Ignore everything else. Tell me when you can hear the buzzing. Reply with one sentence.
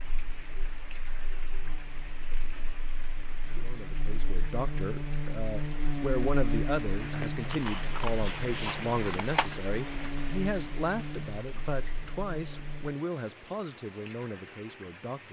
You can hear the buzzing from 0.0 to 12.9 s.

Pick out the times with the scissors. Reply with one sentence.
The scissors can be heard from 7.5 to 9.5 s.